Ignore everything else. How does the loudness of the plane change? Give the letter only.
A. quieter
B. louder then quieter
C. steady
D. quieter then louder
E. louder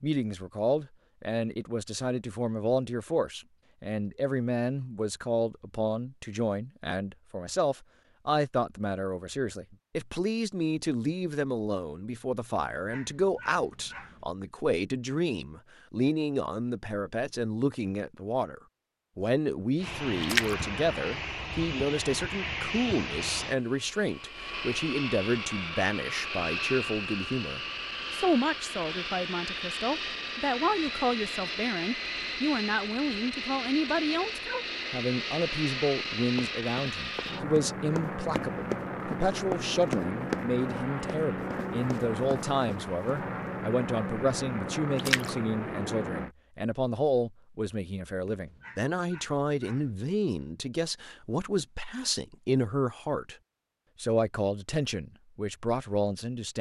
C.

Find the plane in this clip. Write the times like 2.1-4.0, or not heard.
19.8-46.4.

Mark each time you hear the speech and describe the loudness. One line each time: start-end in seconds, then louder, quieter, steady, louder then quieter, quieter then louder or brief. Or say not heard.
0.0-53.4 steady
54.0-56.5 brief.